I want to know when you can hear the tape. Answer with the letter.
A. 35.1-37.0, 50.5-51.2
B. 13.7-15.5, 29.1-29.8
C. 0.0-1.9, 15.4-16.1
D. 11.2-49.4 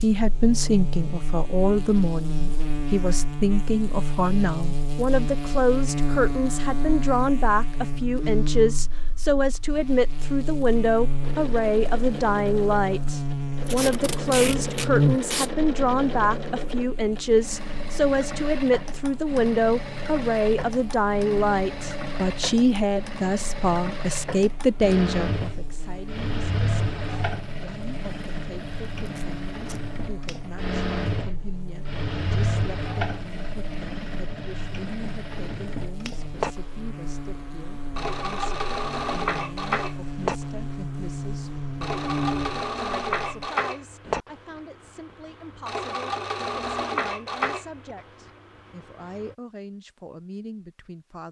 B.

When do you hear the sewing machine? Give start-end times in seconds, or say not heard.
11.2-49.4.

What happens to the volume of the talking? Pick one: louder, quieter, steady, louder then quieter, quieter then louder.
quieter.